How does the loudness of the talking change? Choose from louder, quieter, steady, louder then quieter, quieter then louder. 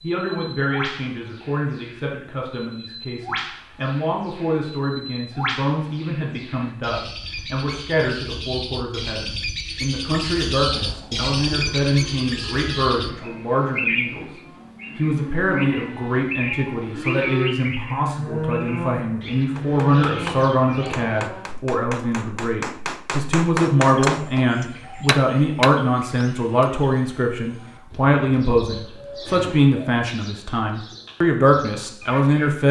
louder.